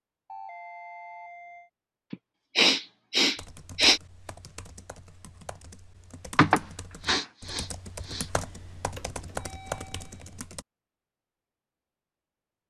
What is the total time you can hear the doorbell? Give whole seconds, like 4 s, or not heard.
3 s.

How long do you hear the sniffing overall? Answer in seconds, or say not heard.
4 s.